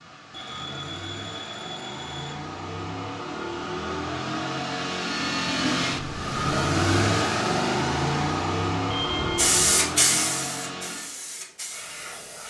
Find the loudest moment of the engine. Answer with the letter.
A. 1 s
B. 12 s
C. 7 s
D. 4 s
C.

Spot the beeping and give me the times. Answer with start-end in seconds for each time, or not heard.
0.3-2.4, 5.9-6.7, 8.8-9.6.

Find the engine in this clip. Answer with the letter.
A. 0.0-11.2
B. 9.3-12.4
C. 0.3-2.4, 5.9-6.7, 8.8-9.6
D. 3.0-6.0
A.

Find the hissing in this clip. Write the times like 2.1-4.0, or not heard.
9.3-12.4.